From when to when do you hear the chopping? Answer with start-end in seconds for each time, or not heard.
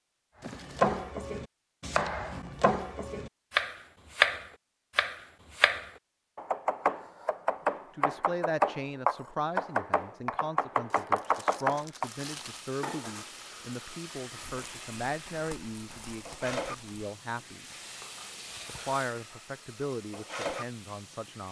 0.5-12.1.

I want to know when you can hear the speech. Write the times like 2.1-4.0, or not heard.
8.0-17.6, 18.6-21.4.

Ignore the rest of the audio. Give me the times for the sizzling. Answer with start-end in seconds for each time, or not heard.
12.0-21.4.